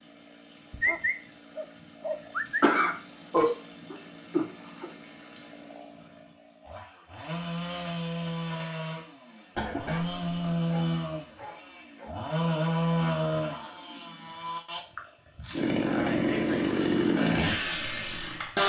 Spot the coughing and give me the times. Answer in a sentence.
You can hear the coughing from 2.6 to 4.8 s and from 9.6 to 10.5 s.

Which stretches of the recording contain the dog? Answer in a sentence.
You can hear the dog from 0.7 to 2.6 s and from 10.7 to 12.2 s.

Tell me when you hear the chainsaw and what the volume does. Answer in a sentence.
The chainsaw can be heard from 0.0 to 18.6 s, getting louder.